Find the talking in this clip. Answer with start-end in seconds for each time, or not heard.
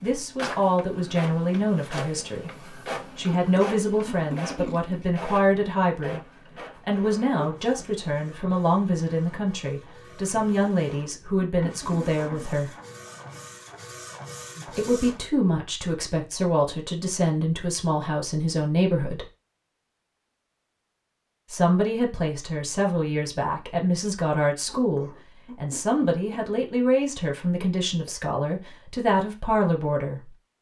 0.0-6.2, 6.8-12.8, 14.7-19.2, 21.5-30.4.